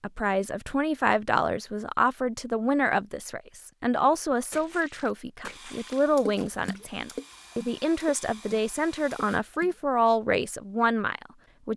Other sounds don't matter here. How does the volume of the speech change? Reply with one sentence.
The volume of the speech stays about the same.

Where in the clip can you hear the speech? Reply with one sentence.
You can hear the speech from 0.0 to 11.7 s.